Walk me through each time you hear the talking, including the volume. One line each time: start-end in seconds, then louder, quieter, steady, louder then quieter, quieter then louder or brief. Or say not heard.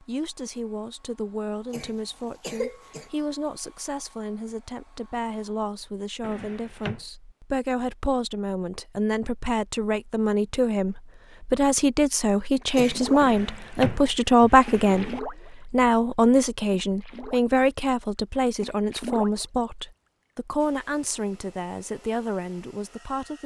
0.0-23.4 louder then quieter.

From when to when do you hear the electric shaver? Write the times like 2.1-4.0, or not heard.
not heard.